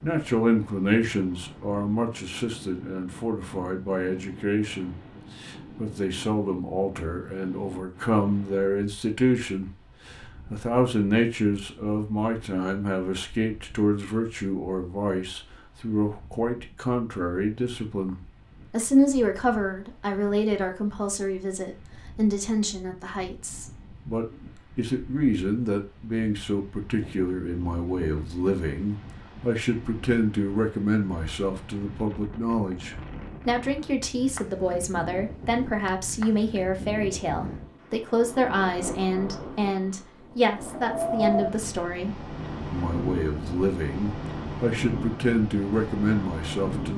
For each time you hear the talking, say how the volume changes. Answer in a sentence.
The talking can be heard from 0.0 to 46.9 s, at a steady volume.